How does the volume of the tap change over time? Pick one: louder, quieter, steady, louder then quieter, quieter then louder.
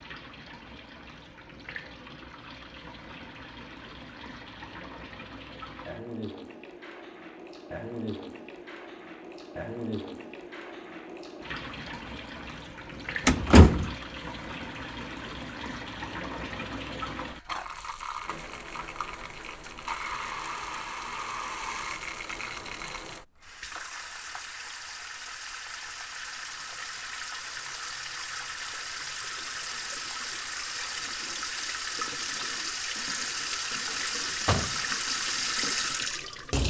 louder.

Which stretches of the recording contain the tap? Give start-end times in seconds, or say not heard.
0.0-36.6.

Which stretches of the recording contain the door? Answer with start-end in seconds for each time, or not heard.
13.2-13.9, 33.9-34.9.